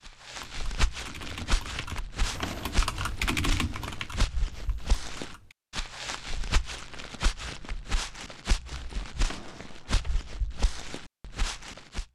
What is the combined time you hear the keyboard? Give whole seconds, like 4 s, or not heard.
5 s.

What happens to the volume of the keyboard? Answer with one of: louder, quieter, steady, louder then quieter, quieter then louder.
louder then quieter.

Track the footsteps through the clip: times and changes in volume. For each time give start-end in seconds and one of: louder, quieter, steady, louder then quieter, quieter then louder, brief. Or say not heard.
0.1-12.1 steady.